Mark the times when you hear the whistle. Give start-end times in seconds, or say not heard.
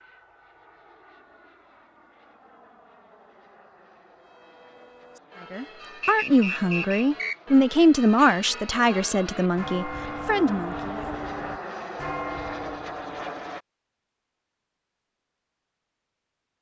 6.0-7.5.